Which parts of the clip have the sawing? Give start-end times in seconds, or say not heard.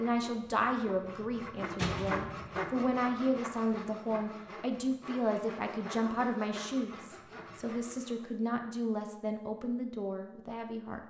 0.0-8.2.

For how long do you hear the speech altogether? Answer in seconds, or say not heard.
11 s.